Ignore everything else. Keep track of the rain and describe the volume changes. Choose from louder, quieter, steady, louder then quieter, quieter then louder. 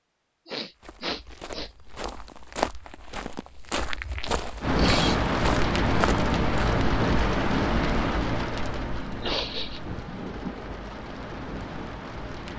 quieter.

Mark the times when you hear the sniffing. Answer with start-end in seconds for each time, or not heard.
0.5-1.7, 4.8-5.3, 9.2-9.8.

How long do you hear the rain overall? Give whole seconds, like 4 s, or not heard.
8 s.